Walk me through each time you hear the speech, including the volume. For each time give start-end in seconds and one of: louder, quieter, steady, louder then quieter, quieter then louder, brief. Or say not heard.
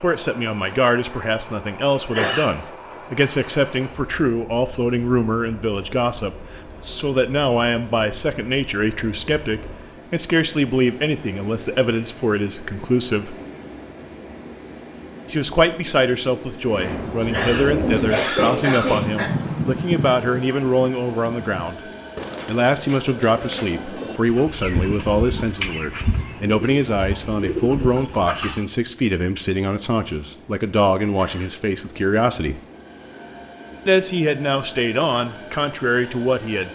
0.0-13.3 steady
15.3-32.6 steady
33.9-36.6 brief.